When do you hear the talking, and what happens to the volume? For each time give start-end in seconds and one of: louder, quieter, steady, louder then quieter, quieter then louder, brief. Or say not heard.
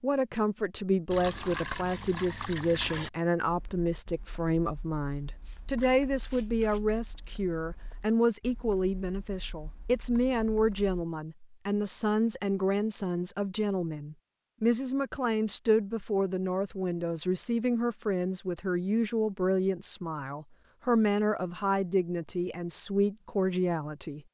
0.0-24.2 steady.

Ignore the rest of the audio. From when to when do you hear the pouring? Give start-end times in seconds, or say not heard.
1.1-3.1.